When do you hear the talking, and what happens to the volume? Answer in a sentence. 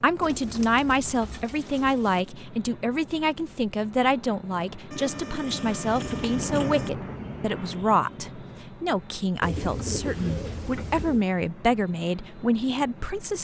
You can hear the talking from 0.0 to 13.3 s, at a steady volume.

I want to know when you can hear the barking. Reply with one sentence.
The barking can't be heard in this clip.